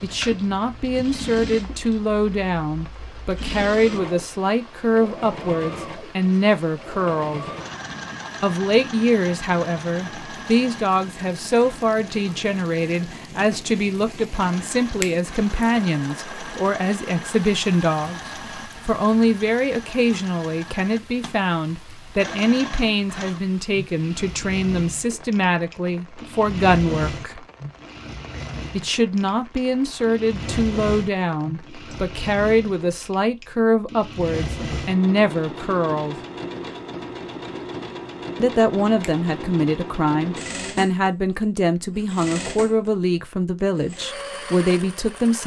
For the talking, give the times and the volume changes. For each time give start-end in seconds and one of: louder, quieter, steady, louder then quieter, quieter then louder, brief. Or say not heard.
0.0-7.5 steady
8.4-27.4 steady
28.7-36.2 steady
38.4-45.4 steady.